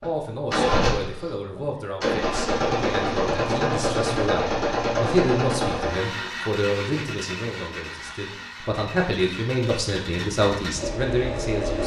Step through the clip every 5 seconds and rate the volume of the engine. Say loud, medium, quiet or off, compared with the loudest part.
loud, medium, medium.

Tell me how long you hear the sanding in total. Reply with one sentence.
You can't hear the sanding here.